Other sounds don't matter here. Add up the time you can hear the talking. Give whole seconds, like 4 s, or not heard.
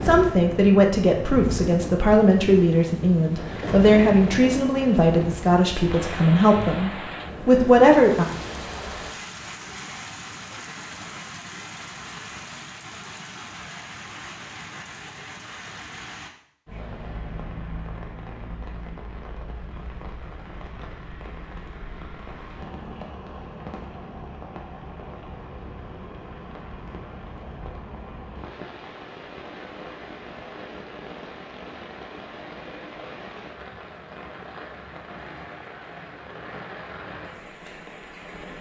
8 s.